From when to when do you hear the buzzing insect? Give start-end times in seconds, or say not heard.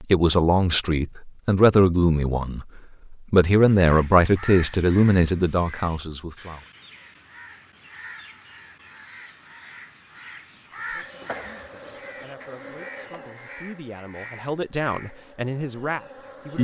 10.9-16.5.